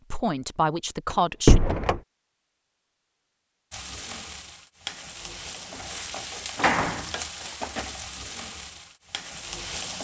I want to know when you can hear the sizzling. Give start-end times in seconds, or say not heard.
3.7-9.9.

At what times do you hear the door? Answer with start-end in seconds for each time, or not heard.
1.1-2.0, 5.7-7.7.